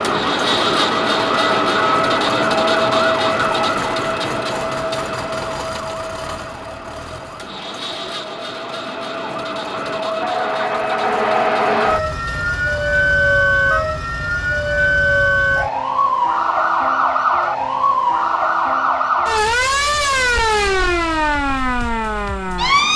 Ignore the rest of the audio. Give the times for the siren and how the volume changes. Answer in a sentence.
You can hear the siren from 0.0 to 22.9 s, getting quieter then louder.